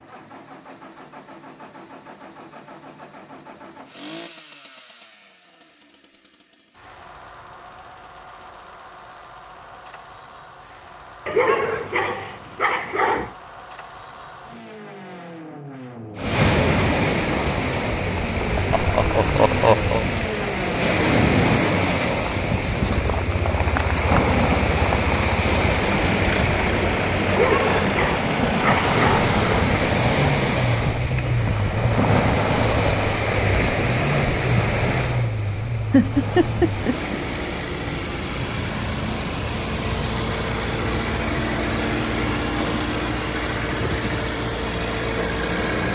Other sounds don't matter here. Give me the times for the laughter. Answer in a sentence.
You can hear the laughter from 18.7 to 20.1 s and from 35.9 to 37.1 s.